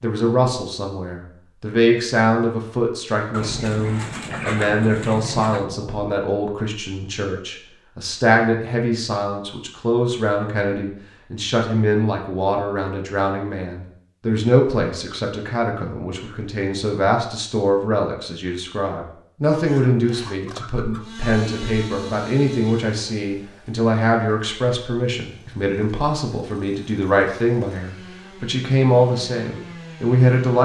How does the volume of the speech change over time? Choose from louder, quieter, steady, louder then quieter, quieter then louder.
steady.